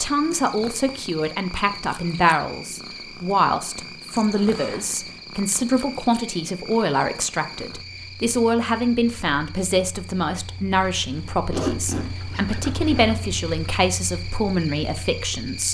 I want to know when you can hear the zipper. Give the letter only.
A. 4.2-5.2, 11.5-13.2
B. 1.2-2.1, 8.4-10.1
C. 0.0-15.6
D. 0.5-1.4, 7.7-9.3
A.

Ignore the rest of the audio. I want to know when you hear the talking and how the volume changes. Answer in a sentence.
The talking can be heard from 0.0 to 15.6 s, at a steady volume.